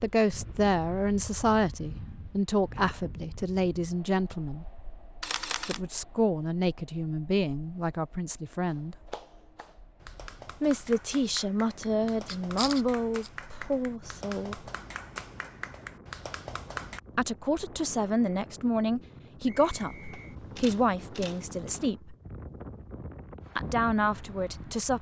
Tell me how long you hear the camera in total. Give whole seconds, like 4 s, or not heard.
4 s.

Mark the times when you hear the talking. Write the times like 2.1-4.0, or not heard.
0.0-4.8, 5.7-8.9, 10.6-14.6, 17.1-22.1, 23.6-24.9.